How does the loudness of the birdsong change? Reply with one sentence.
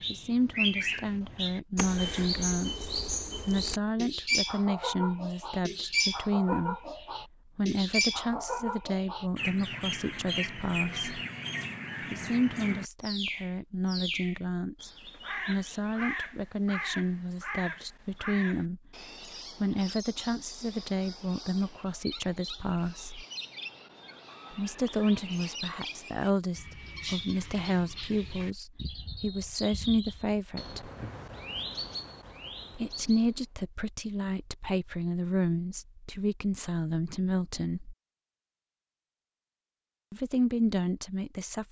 The loudness of the birdsong goes down.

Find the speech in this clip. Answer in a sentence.
The speech can be heard from 0.1 to 11.2 s, from 12.0 to 23.2 s, from 24.5 to 30.9 s, from 32.7 to 38.0 s and from 40.1 to 41.6 s.